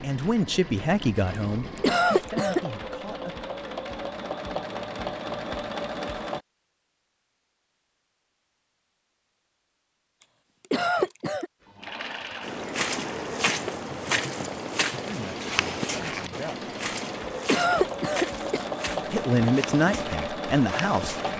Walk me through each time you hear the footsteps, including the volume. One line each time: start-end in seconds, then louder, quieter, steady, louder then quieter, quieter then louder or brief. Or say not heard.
12.4-21.3 quieter.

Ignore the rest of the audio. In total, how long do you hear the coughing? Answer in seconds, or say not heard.
3 s.